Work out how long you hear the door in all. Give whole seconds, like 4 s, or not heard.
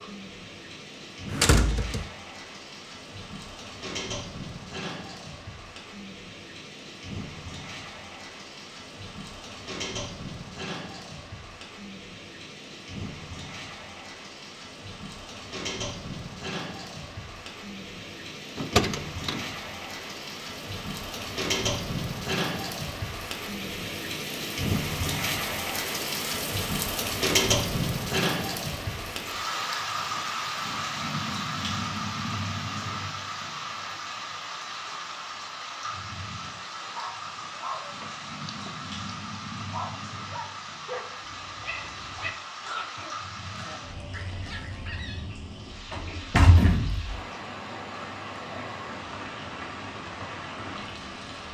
3 s.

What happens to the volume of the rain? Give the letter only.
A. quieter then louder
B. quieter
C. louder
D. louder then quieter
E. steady
D.